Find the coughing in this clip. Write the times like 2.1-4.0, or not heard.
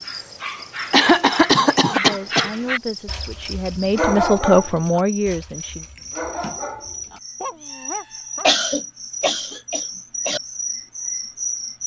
0.9-2.5, 8.4-10.4.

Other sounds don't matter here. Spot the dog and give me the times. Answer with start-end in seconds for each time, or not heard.
0.0-8.5.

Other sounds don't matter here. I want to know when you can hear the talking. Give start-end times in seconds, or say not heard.
1.9-5.8.